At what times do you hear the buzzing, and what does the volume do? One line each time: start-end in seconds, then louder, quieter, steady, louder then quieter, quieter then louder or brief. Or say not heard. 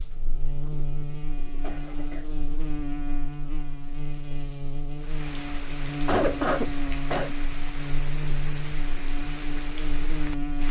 0.0-10.6 steady.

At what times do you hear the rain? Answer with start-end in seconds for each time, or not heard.
5.0-10.6.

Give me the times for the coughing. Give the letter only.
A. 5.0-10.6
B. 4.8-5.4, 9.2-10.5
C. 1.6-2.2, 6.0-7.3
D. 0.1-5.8
C.